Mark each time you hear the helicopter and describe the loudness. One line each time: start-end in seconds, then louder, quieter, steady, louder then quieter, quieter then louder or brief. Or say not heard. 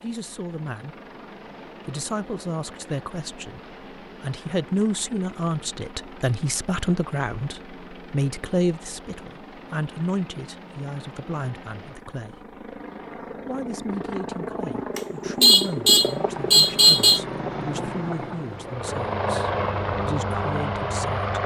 0.0-21.4 louder.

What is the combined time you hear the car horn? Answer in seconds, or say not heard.
2 s.